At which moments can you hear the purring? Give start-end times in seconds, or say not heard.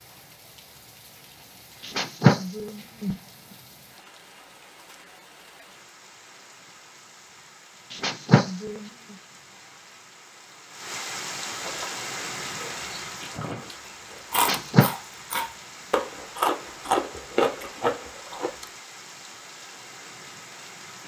not heard.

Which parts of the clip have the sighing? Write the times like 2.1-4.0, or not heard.
1.8-3.1, 7.9-8.8, 14.3-14.9.